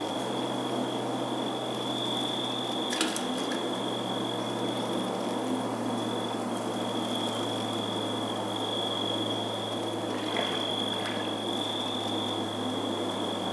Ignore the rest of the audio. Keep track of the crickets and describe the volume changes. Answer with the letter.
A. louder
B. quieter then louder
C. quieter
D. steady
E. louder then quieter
D.